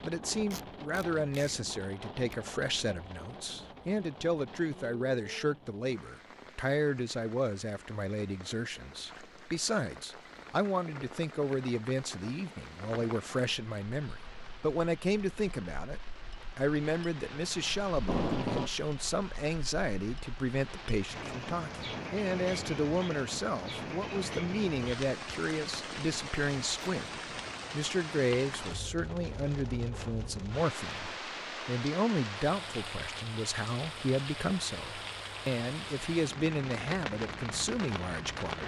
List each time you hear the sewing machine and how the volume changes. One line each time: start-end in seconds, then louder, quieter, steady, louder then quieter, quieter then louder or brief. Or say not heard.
not heard.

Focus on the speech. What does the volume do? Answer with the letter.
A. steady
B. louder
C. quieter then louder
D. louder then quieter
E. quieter
A.